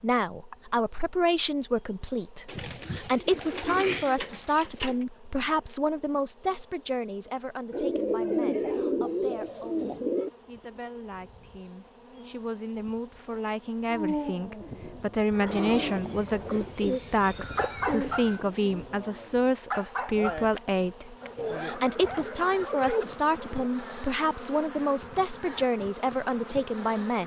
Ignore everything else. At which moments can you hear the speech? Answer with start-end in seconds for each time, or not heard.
0.0-27.2.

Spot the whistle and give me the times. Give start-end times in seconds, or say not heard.
not heard.